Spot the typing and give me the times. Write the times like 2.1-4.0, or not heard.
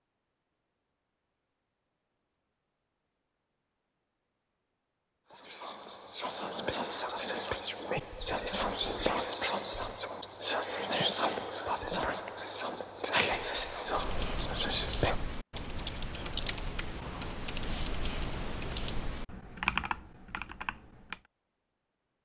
13.8-21.2.